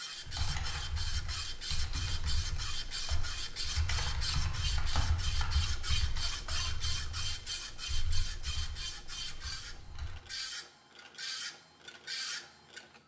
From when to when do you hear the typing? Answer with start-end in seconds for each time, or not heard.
0.1-10.2.